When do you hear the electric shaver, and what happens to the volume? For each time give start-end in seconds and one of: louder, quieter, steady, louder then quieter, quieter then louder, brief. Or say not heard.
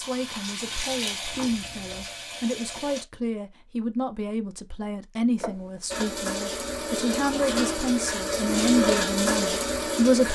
not heard.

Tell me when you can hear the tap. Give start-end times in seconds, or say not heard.
0.0-3.0, 5.9-10.3.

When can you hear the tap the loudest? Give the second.
9 s.